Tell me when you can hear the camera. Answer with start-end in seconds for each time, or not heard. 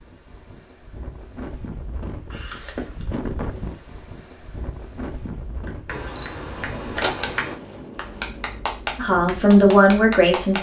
2.3-3.0, 5.9-7.5.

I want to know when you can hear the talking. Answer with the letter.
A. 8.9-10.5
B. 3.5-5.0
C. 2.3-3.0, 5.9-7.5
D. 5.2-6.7
A.